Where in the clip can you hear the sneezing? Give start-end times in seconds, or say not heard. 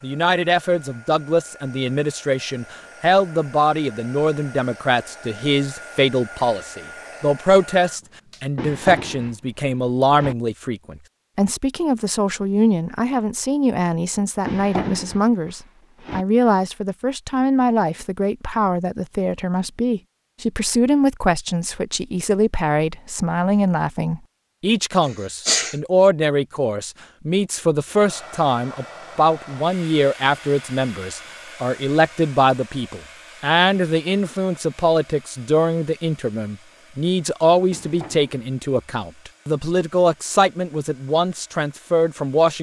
25.1-25.8.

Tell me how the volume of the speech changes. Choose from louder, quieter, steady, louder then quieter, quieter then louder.
steady.